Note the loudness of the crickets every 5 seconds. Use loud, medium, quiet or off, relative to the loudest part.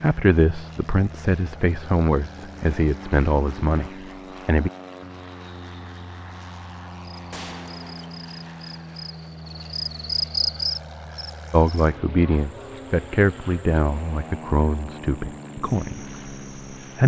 off, medium, loud, quiet.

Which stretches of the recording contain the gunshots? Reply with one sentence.
The gunshots can be heard from 7.3 to 8.2 s.